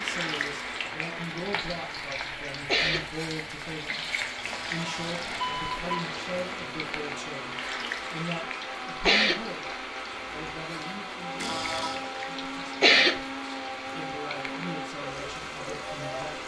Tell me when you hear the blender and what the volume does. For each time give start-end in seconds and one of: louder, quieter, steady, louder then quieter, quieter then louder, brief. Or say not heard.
0.0-16.4 louder.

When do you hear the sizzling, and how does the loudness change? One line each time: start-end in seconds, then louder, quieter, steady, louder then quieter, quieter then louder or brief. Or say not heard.
0.0-16.4 quieter.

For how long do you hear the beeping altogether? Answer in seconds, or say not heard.
2 s.